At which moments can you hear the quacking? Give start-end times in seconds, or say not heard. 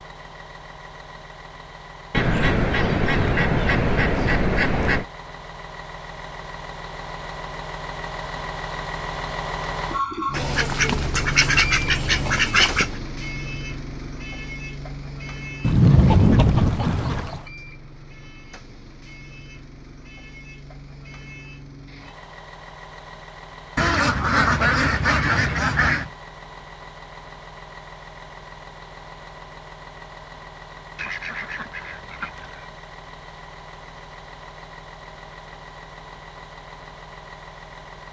2.1-5.0, 10.3-12.9, 15.6-17.4, 23.8-26.1, 30.9-32.6.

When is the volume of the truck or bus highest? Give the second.
10 s.